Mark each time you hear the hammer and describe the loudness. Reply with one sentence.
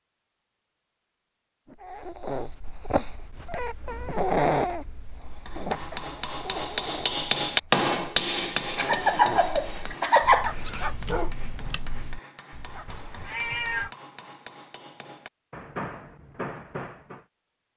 The hammer can be heard from 5.2 to 17.2 s, getting quieter then louder.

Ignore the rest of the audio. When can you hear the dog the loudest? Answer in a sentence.
The volume of the dog peaks at 4 seconds.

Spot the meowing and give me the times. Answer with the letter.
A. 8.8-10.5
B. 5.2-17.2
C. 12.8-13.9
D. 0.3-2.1
C.